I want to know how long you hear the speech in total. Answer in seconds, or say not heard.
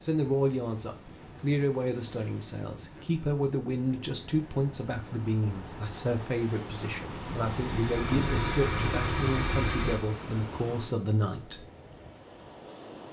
12 s.